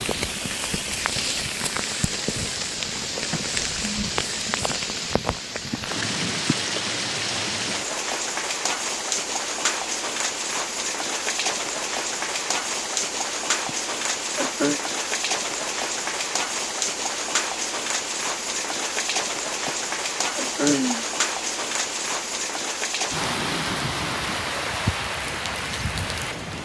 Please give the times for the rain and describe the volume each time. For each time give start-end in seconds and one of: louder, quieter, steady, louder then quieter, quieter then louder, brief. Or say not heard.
0.0-26.6 steady.